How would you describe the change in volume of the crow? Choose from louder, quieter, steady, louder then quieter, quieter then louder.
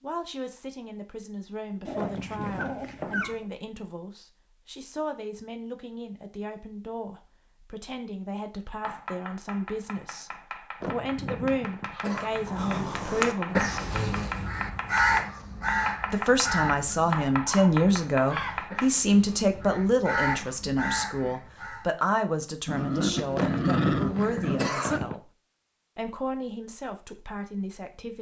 quieter then louder.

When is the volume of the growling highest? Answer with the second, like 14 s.
24 s.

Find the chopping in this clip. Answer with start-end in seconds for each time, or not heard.
8.8-18.9.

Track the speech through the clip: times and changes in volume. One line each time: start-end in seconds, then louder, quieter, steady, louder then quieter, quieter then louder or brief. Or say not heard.
0.0-13.7 louder
16.1-25.3 quieter
25.9-28.1 brief.